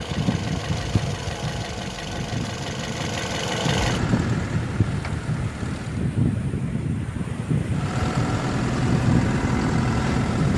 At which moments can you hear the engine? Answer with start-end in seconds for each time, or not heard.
0.0-6.1, 7.7-10.5.